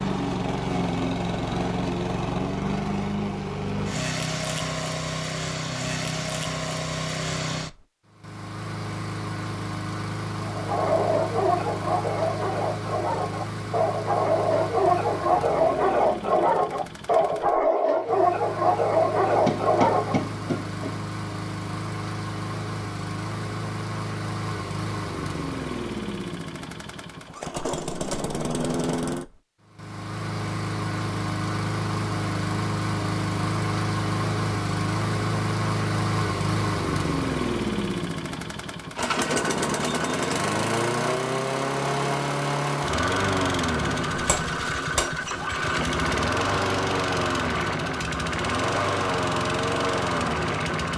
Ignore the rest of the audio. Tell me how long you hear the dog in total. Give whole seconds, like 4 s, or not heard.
10 s.